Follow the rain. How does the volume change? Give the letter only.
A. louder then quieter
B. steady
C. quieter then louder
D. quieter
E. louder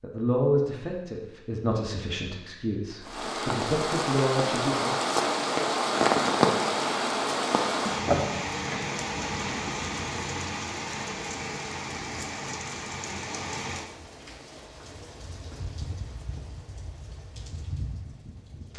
D.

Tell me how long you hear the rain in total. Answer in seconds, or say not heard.
16 s.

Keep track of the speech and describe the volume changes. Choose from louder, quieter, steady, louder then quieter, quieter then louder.
quieter then louder.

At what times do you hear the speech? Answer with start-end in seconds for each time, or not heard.
0.0-5.0.